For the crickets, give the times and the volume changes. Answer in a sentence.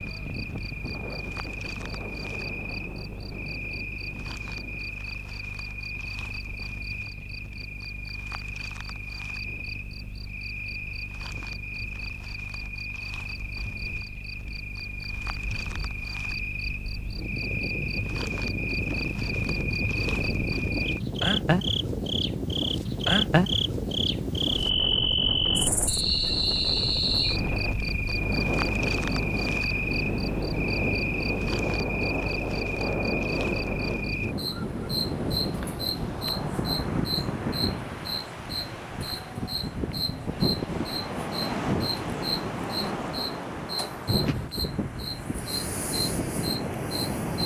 The crickets can be heard from 0.0 to 47.4 s, getting louder then quieter.